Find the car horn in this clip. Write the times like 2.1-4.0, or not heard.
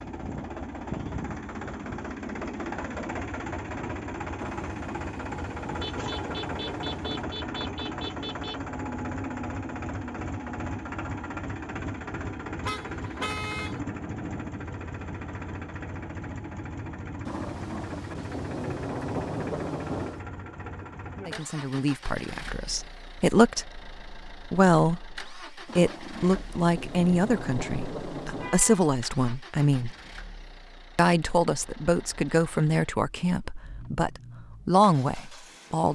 5.8-8.6, 12.6-13.8, 28.4-28.9.